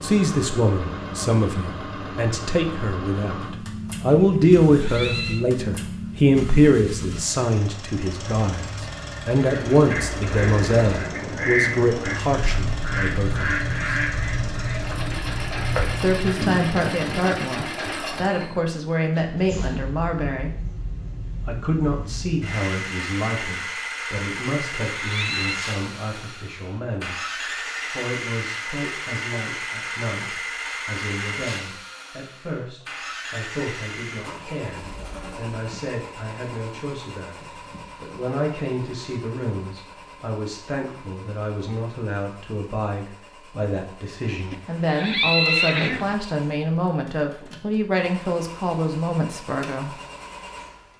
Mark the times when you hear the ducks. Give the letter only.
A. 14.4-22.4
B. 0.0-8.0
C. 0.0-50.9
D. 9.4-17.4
D.